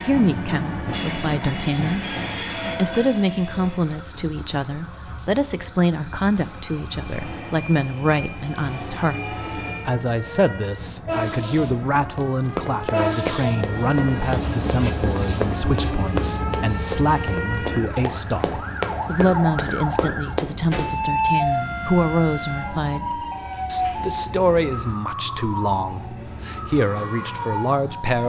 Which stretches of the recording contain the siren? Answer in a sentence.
The siren can be heard from 0.0 to 28.2 s.